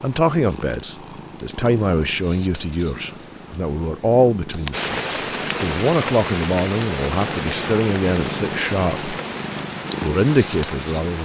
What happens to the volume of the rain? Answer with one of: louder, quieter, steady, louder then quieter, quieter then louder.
quieter.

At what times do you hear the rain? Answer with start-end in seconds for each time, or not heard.
4.7-11.1.